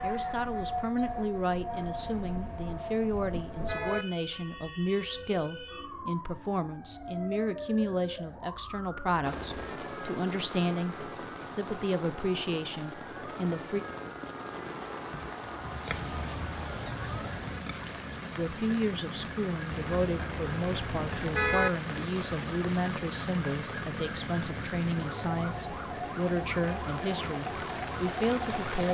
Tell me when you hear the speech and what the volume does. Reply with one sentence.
You can hear the speech from 0.0 to 13.8 s, at a steady volume; and from 18.4 to 28.8 s, at a steady volume.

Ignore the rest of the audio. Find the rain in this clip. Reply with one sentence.
You can hear the rain from 9.2 to 28.8 s.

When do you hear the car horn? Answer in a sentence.
The car horn can be heard from 2.0 to 4.0 s, from 15.9 to 17.6 s and from 19.6 to 21.7 s.